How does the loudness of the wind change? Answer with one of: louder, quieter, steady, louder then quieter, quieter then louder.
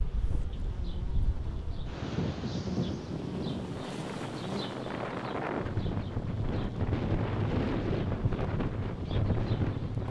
louder.